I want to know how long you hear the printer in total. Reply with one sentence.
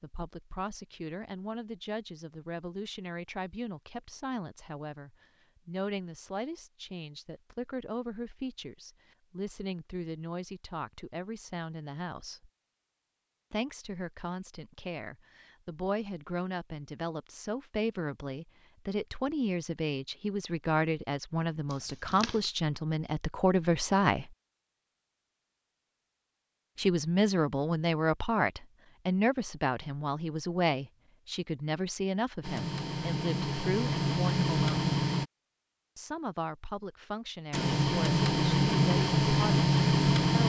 You can hear the printer for 6 seconds altogether.